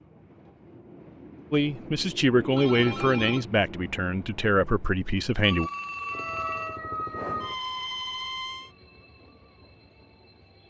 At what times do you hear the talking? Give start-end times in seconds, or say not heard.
1.5-5.7.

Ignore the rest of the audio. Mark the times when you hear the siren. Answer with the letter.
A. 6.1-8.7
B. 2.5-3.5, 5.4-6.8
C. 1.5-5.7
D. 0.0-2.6
A.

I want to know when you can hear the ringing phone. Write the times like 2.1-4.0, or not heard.
2.5-3.5, 5.4-6.8.